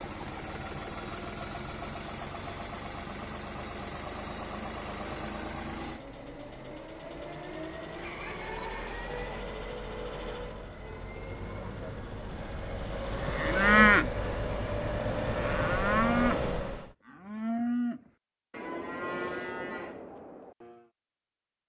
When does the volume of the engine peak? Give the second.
16 s.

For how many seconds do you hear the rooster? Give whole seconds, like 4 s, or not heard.
2 s.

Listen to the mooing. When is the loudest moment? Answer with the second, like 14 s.
14 s.